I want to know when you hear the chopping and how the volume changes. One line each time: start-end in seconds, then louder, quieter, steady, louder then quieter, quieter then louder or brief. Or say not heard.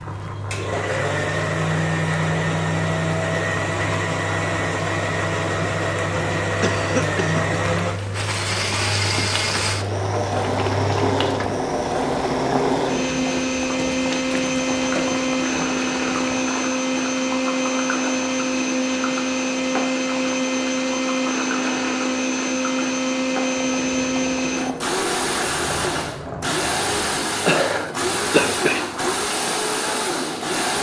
not heard.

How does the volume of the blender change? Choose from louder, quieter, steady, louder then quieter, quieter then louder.
steady.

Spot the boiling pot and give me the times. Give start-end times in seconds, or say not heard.
0.0-30.7.